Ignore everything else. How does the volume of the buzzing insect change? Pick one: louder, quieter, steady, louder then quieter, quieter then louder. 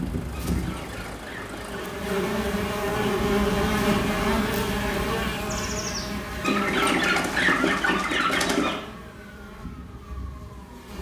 louder then quieter.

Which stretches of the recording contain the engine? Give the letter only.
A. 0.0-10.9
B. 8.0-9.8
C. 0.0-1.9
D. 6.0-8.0
C.